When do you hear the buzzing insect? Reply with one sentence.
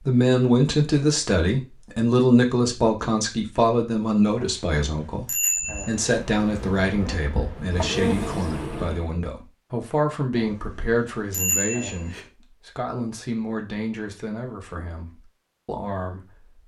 You can hear the buzzing insect from 5.6 to 9.2 s.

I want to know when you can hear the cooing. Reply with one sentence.
You can't hear the cooing here.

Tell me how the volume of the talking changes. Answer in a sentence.
The loudness of the talking goes down.